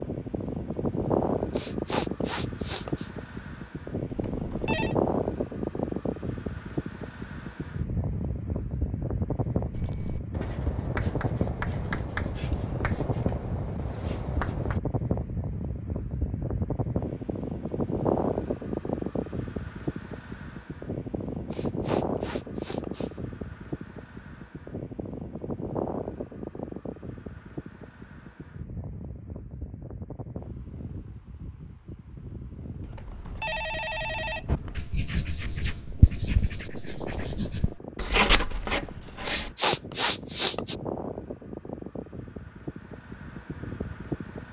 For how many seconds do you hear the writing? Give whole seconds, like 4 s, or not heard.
10 s.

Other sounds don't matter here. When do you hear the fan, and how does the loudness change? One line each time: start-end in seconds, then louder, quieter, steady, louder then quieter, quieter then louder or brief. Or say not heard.
0.0-44.4 quieter.